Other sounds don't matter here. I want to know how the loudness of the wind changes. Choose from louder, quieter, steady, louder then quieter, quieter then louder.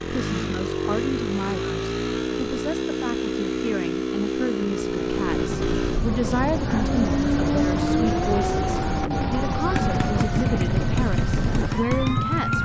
steady.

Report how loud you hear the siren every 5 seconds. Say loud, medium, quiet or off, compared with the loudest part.
off, loud, loud.